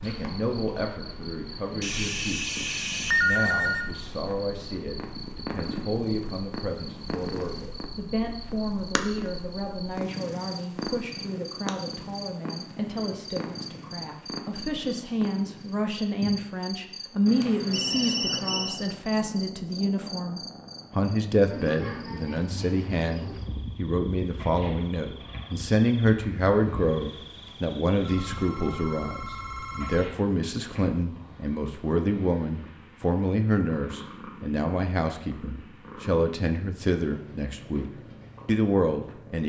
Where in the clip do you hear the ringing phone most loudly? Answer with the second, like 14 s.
3 s.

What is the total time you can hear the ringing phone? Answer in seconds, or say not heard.
6 s.